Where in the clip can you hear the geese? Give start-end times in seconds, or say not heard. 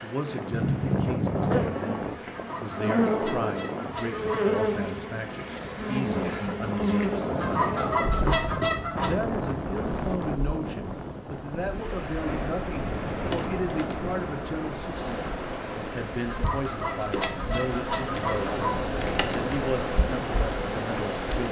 2.3-4.5, 7.3-9.1, 16.2-18.8.